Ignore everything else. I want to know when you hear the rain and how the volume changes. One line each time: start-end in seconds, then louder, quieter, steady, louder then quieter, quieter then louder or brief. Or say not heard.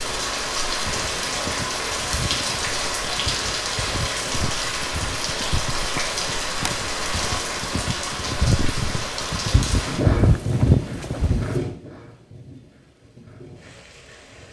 0.0-14.4 quieter.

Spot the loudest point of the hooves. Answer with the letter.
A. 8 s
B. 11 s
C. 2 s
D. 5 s
B.